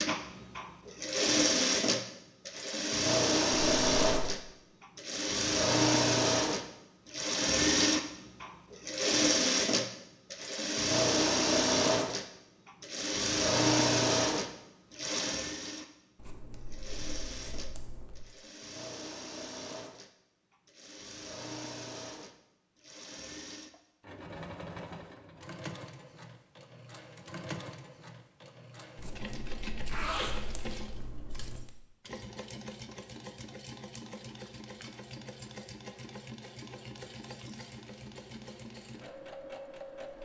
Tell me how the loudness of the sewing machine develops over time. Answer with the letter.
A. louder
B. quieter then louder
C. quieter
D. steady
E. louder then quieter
C.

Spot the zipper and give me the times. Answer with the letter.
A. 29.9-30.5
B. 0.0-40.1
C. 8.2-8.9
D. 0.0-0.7
A.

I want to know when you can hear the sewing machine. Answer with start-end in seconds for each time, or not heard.
0.0-40.1.